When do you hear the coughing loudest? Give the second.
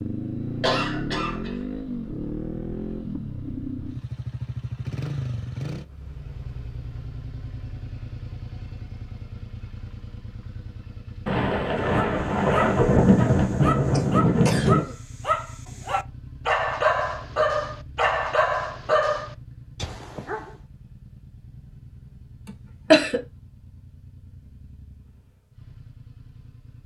23 s.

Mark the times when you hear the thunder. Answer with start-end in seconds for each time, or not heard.
11.2-14.8.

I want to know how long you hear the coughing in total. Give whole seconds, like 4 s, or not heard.
3 s.